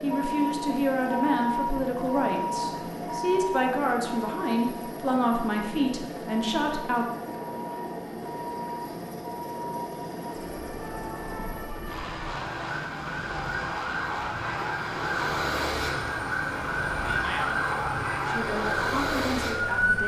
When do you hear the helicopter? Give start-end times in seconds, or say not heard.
0.0-20.0.